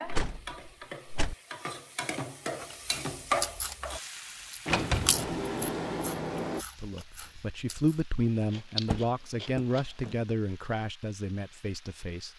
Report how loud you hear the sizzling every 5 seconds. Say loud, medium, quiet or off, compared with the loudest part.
loud, quiet, quiet.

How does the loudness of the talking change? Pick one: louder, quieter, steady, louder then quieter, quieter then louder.
quieter.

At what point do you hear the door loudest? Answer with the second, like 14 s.
5 s.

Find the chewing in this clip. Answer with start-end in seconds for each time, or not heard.
2.7-10.0.